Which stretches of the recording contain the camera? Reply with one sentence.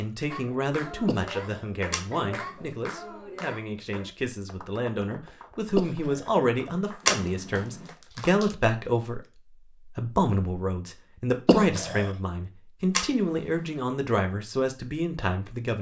You can hear the camera from 1.9 to 2.6 s, from 7.0 to 7.8 s and from 12.9 to 13.8 s.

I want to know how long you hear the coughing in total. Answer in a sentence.
You can hear the coughing for 2 seconds altogether.